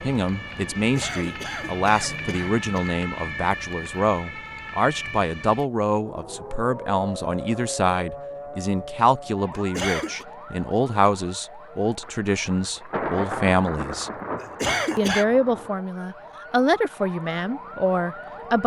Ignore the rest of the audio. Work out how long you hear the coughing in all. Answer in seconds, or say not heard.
4 s.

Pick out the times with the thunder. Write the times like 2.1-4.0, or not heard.
12.0-15.8.